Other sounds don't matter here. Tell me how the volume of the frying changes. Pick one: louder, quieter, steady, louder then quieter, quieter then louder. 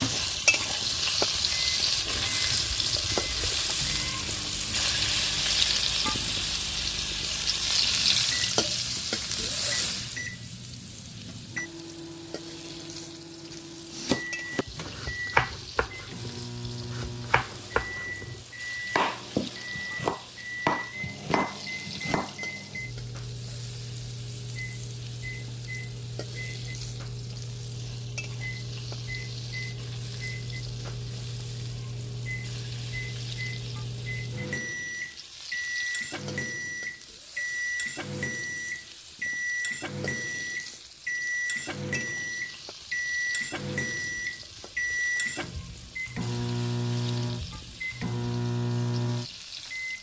quieter.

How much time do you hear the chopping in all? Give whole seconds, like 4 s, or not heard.
9 s.